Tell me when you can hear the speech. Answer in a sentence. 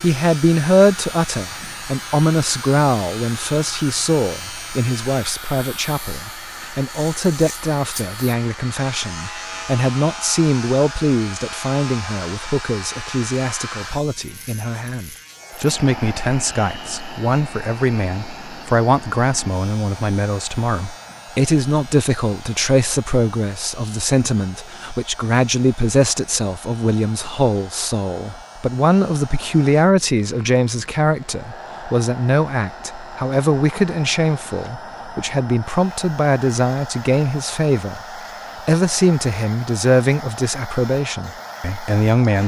You can hear the speech from 0.0 to 42.4 s.